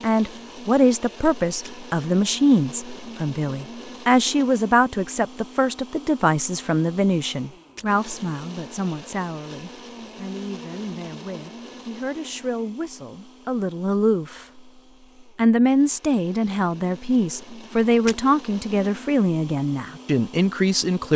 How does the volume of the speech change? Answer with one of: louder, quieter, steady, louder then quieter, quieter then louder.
quieter then louder.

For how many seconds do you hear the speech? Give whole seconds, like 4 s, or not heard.
20 s.